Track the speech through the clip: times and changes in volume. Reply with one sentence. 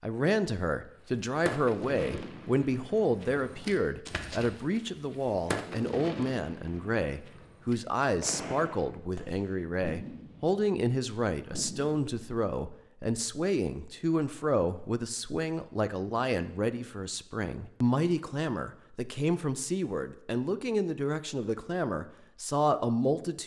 The speech can be heard from 0.0 to 23.4 s, at a steady volume.